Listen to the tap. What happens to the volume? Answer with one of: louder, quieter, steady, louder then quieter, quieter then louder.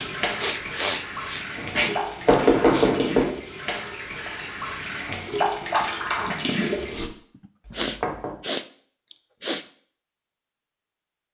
louder.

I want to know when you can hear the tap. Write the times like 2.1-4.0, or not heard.
0.0-7.1.